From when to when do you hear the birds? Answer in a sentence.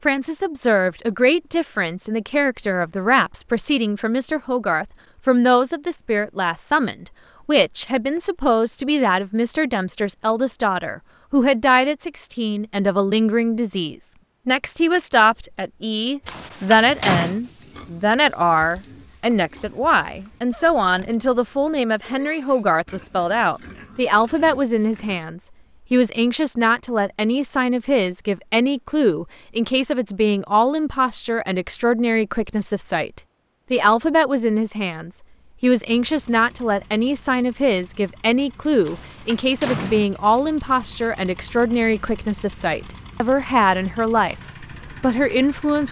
The birds can't be heard in this clip.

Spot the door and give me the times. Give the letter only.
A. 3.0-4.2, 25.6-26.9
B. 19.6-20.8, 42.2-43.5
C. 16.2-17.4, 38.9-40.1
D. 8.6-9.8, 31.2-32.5
C.